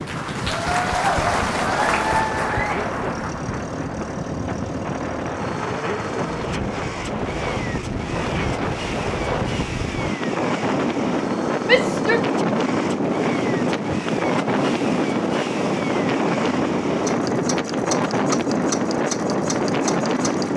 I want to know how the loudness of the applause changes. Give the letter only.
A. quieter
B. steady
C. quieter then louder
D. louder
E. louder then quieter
A.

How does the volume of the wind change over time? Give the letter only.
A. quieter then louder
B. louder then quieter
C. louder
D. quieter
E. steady
C.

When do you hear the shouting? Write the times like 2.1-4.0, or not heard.
11.7-12.2.